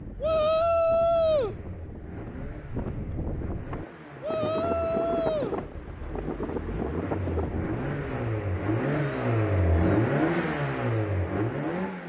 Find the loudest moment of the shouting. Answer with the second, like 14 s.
1 s.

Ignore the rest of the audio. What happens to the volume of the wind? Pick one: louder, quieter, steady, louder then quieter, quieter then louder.
louder.